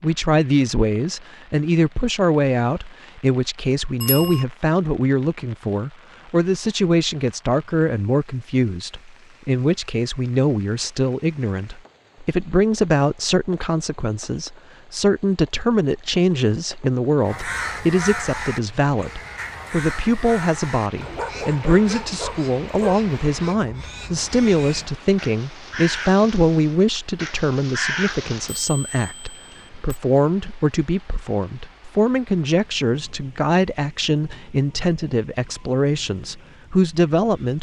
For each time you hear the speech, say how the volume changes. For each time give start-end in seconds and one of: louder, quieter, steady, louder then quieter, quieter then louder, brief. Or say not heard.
0.0-37.5 steady.